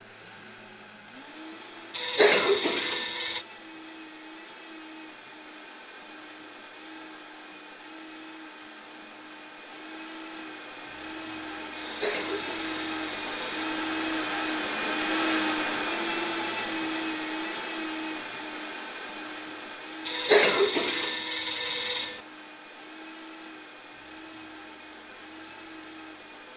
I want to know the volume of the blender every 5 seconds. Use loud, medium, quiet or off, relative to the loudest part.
quiet, quiet, loud, loud, quiet, quiet.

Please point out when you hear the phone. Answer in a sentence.
The phone can be heard from 1.9 to 3.5 s, from 11.8 to 13.7 s and from 20.1 to 22.2 s.